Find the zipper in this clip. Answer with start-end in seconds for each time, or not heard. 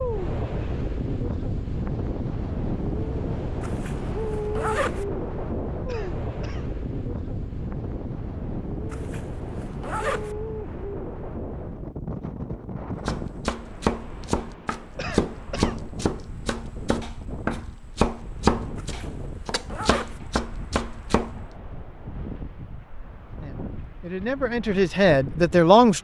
3.6-5.0, 8.9-10.3, 18.8-20.2.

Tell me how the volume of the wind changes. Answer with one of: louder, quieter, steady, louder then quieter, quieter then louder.
quieter.